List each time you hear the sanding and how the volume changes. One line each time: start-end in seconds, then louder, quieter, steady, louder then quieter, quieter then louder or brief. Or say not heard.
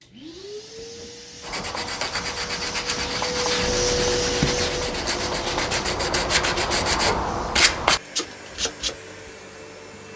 1.4-8.9 louder.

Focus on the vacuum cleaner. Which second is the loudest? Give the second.
4 s.